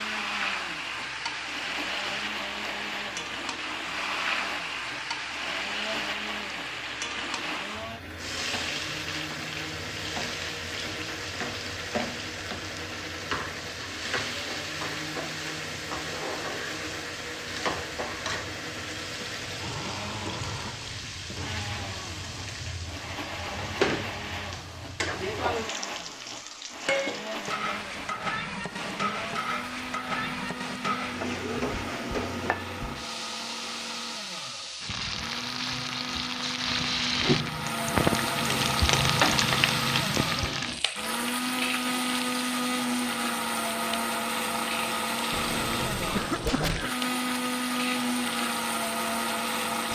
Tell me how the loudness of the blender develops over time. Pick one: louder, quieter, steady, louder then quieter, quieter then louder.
louder.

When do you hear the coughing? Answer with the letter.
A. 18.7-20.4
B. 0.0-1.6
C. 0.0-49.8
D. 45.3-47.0
D.